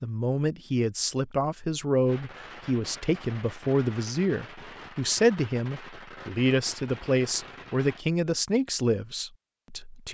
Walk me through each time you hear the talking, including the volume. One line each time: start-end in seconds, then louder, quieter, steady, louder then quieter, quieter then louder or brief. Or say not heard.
0.0-10.1 steady.